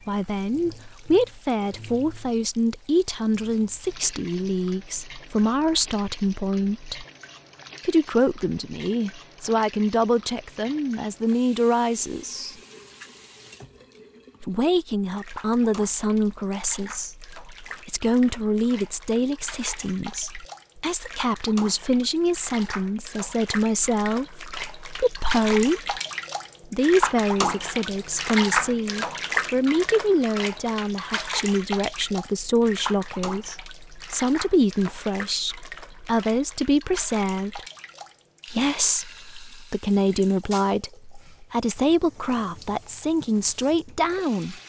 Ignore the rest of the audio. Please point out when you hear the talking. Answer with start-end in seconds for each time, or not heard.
0.1-7.0, 7.8-12.6, 14.4-25.9, 26.7-37.6, 38.5-44.5.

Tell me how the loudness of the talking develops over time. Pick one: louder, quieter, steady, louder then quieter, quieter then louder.
steady.